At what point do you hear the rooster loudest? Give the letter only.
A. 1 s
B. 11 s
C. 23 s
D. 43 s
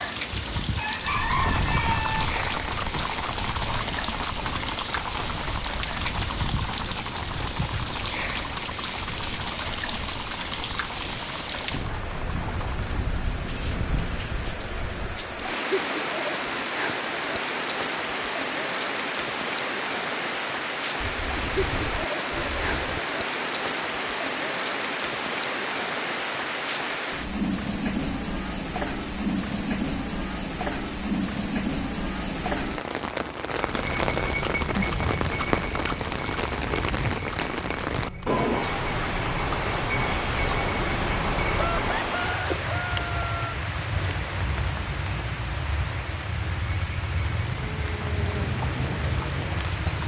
A.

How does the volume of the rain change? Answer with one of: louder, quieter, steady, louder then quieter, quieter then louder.
steady.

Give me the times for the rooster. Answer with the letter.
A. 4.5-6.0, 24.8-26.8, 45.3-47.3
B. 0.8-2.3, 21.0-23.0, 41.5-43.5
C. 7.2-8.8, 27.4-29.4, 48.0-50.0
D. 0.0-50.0
B.